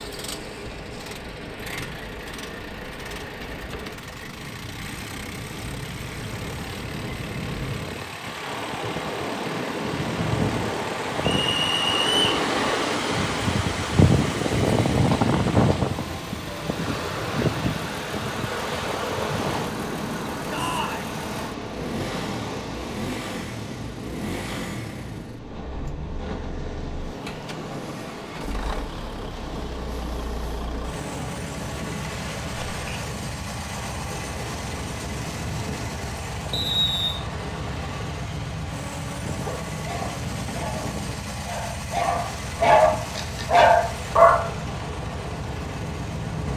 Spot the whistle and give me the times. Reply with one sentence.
You can hear the whistle from 11.2 to 12.4 s and from 36.5 to 37.2 s.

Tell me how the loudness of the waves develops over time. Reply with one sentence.
The loudness of the waves goes up, then down.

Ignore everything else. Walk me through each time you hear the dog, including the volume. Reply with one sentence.
You can hear the dog from 39.4 to 44.5 s, getting louder.